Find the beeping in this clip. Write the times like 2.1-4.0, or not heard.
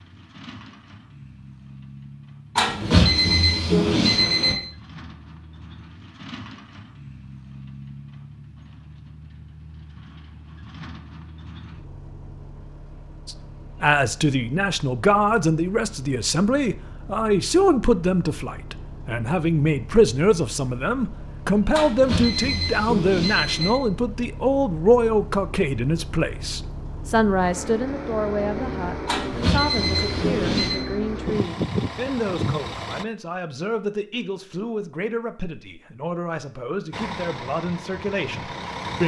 2.5-4.5, 21.7-23.7, 29.1-30.8.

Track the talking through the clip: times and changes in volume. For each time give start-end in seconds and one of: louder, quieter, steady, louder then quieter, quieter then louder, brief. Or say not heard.
13.2-39.0 quieter.